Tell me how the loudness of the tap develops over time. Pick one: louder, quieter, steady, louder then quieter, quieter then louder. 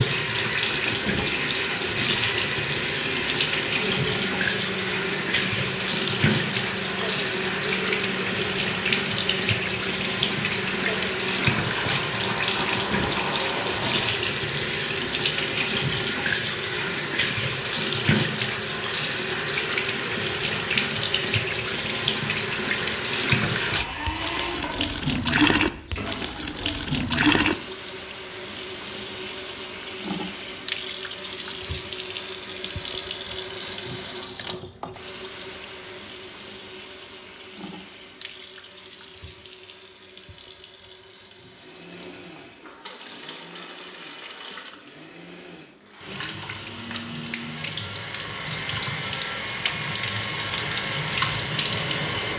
quieter.